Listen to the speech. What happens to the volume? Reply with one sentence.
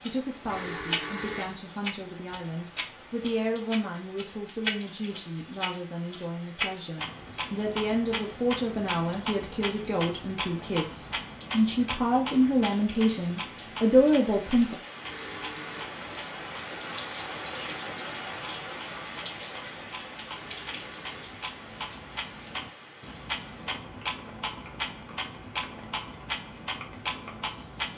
The volume of the speech goes up.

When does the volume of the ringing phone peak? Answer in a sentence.
The volume of the ringing phone peaks at 1 second.